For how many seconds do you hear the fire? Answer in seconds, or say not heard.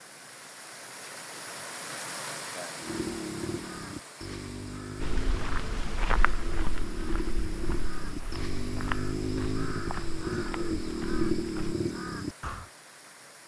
not heard.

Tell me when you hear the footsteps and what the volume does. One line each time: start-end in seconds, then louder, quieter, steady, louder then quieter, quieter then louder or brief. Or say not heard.
5.0-11.8 quieter.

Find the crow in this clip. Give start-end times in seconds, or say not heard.
2.8-12.7.